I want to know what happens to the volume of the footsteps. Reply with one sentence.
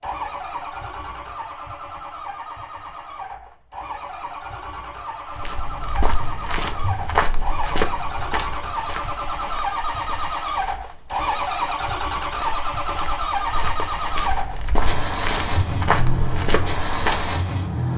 The volume of the footsteps goes down, then up.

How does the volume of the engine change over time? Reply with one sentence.
The volume of the engine goes up.